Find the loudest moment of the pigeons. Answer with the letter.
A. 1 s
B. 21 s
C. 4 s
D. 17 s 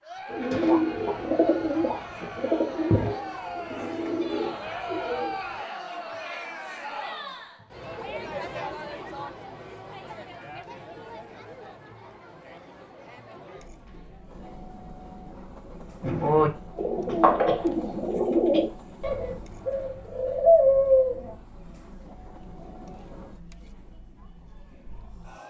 B.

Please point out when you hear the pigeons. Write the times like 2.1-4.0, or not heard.
0.3-5.6, 16.0-21.4.